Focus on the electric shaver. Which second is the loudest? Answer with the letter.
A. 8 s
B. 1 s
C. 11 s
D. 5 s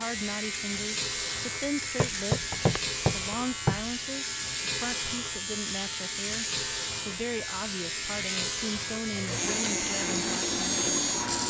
C.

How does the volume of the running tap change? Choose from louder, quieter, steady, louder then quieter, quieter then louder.
steady.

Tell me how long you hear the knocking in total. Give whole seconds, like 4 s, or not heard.
2 s.